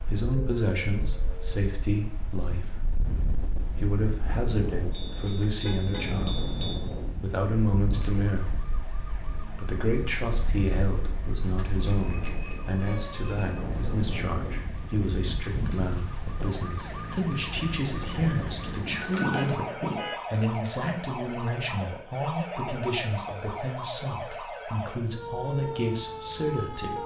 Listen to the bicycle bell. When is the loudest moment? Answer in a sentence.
The volume of the bicycle bell peaks at 19 seconds.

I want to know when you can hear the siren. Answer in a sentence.
You can hear the siren from 0.2 to 1.6 s and from 7.9 to 27.0 s.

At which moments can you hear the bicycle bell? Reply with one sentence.
The bicycle bell can be heard from 4.9 to 6.8 s, from 11.8 to 13.6 s and from 19.0 to 19.6 s.